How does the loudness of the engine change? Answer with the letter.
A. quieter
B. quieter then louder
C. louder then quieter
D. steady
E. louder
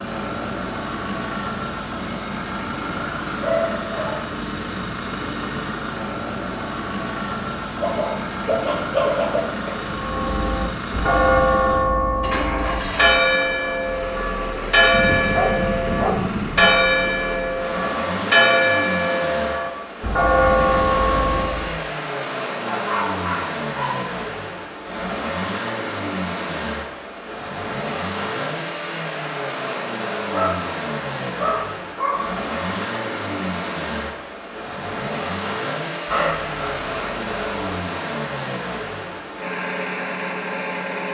D.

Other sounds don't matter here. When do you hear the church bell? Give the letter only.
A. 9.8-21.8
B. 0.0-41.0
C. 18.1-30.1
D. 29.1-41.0
A.